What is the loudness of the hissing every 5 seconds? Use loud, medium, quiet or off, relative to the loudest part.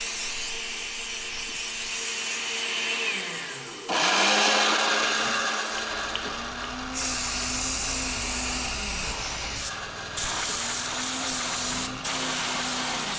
medium, loud, loud.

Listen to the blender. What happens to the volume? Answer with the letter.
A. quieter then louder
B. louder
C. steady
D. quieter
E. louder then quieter
E.